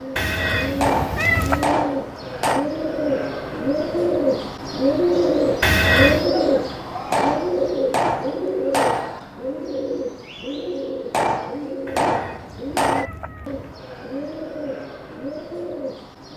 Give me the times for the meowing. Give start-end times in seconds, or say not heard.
0.1-1.8, 5.6-6.3, 11.8-13.8.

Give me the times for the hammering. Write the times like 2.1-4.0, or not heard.
0.8-2.7, 7.1-9.2, 11.1-13.1.